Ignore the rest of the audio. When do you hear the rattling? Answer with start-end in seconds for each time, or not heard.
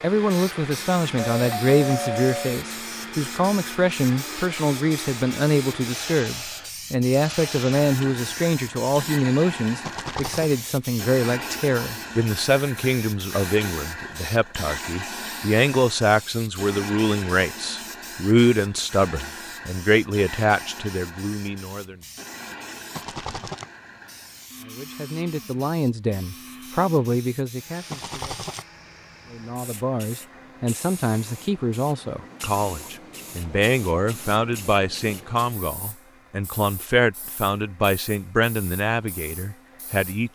9.8-10.6, 22.9-23.7, 27.9-28.6.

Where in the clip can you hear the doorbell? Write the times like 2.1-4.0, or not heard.
1.1-2.6.